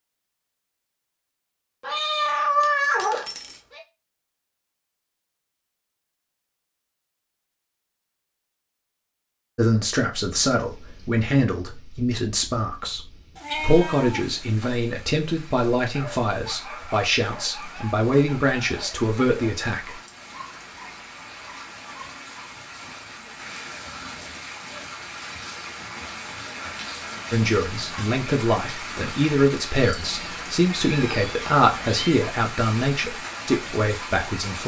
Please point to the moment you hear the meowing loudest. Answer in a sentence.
The loudest moment of the meowing is at 3 seconds.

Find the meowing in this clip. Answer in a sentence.
The meowing can be heard from 1.8 to 3.8 s, from 13.3 to 14.8 s and from 29.8 to 32.2 s.